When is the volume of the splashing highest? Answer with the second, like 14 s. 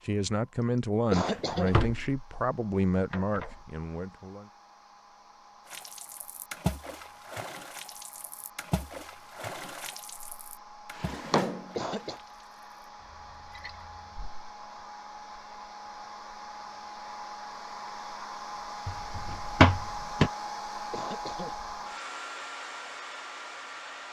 7 s.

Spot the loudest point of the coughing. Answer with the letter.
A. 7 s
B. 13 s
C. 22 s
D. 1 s
D.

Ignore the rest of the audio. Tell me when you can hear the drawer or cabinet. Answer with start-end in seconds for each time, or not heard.
1.2-2.2, 3.1-3.6, 10.9-11.8, 18.9-20.3.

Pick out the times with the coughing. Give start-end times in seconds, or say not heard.
0.9-1.8, 11.6-12.2, 20.8-21.6.